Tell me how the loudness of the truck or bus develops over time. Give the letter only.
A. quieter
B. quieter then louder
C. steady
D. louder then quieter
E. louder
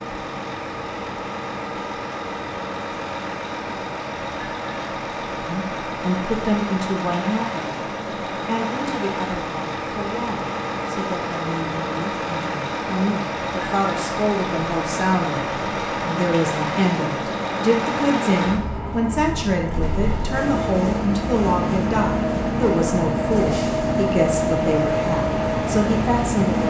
E.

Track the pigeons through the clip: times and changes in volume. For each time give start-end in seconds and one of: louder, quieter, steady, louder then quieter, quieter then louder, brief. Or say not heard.
not heard.